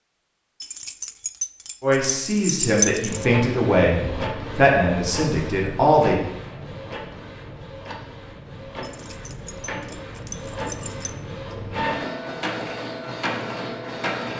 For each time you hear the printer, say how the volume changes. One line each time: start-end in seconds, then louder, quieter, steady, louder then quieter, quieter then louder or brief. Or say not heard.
3.0-14.3 quieter then louder.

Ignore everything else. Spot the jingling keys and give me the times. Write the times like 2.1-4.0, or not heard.
0.6-3.2, 8.8-11.2.